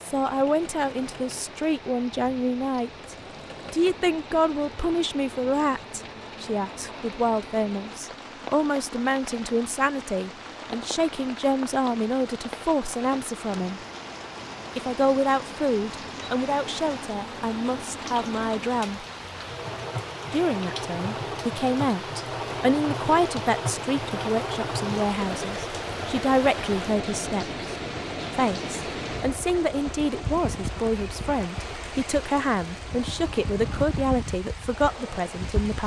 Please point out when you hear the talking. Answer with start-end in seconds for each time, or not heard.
0.0-13.8, 14.8-19.1, 20.3-27.6, 28.4-35.8.